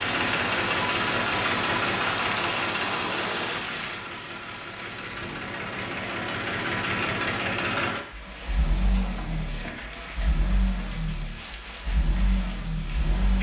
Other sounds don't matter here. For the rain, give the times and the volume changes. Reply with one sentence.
The rain can be heard from 0.0 to 13.3 s, getting quieter.